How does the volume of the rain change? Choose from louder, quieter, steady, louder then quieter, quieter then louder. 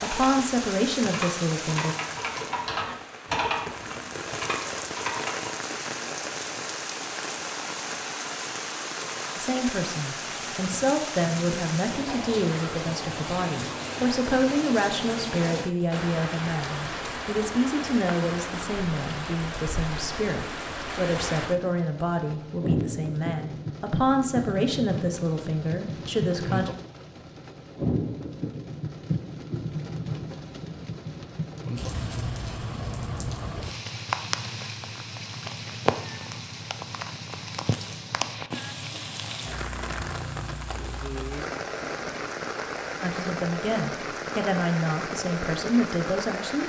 steady.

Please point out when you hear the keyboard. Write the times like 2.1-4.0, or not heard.
0.0-5.5.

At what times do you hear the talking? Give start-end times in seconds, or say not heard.
0.0-1.9, 9.3-26.7, 43.0-46.6.